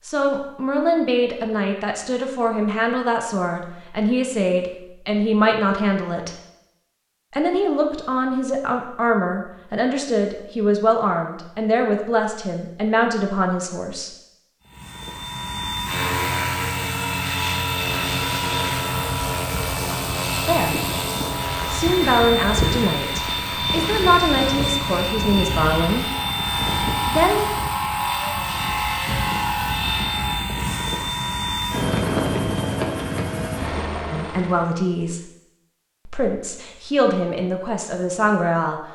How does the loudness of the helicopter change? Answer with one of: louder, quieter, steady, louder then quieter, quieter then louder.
steady.